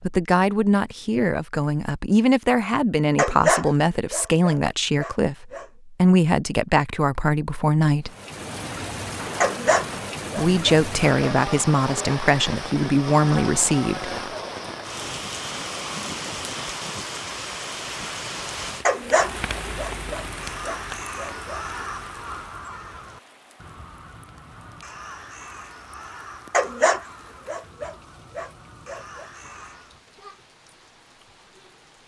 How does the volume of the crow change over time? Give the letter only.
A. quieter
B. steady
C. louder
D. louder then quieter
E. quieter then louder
A.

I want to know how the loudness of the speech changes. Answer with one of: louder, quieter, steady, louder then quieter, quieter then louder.
steady.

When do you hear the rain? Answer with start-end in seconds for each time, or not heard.
8.1-32.0.